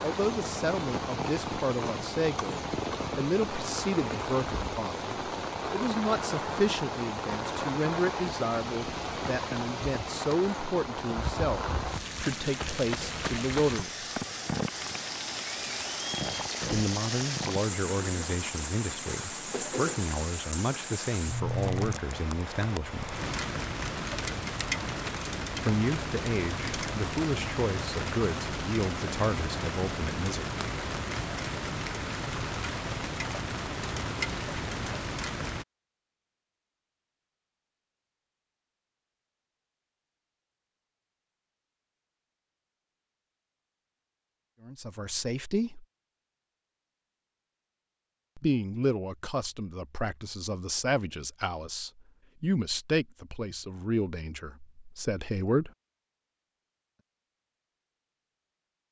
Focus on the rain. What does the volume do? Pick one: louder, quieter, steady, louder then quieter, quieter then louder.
steady.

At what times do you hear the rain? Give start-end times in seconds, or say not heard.
0.0-35.6.